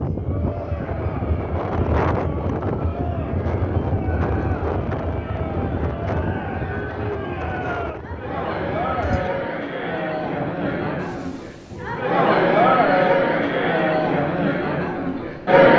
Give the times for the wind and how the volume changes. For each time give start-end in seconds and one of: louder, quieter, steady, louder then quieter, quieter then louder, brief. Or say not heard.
0.0-12.1 quieter.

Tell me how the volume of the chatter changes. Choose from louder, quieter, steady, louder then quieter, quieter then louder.
louder.